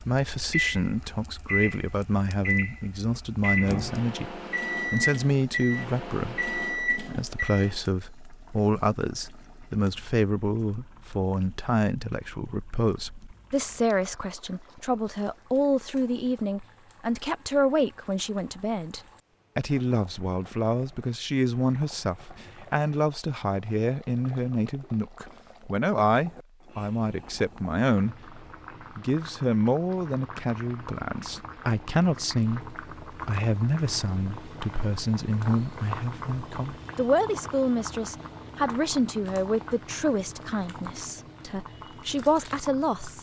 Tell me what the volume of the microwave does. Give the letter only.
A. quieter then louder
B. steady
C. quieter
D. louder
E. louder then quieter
B.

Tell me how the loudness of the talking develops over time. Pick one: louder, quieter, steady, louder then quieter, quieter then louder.
steady.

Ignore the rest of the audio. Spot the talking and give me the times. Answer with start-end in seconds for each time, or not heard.
0.0-43.1.